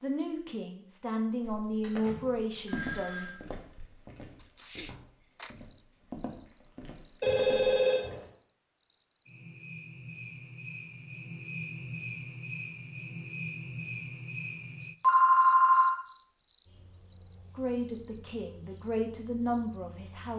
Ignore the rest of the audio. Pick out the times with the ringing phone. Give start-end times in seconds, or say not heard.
1.8-3.4, 7.2-8.2, 15.0-15.9.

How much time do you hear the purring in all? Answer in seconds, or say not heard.
not heard.